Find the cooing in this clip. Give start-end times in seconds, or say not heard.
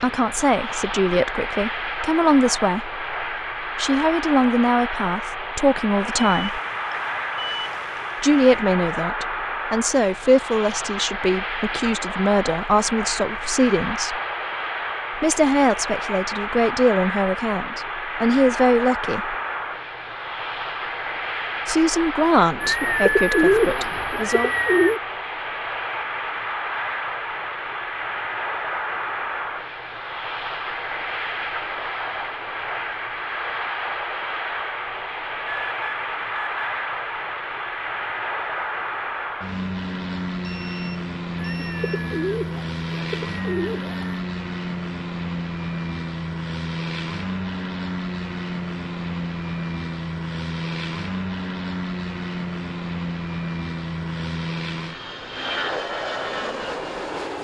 22.6-25.0, 41.4-44.1.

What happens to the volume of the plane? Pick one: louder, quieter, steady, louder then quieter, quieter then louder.
steady.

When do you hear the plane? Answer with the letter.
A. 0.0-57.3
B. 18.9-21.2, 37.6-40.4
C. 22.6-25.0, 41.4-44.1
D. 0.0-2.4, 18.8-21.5
A.